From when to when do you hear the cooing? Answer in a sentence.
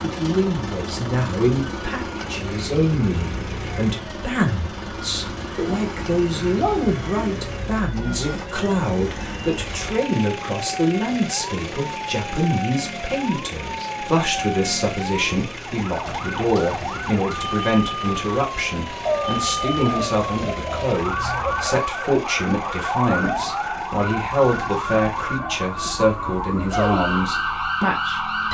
The cooing can be heard from 5.5 to 7.6 s and from 19.1 to 21.8 s.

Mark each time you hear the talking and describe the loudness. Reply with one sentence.
You can hear the talking from 0.0 to 28.4 s, at a steady volume.